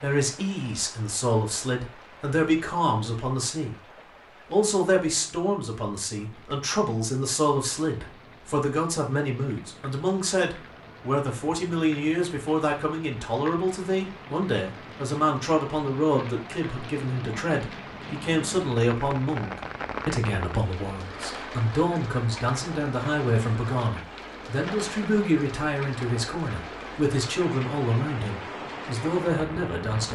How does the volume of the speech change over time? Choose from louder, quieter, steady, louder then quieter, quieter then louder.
steady.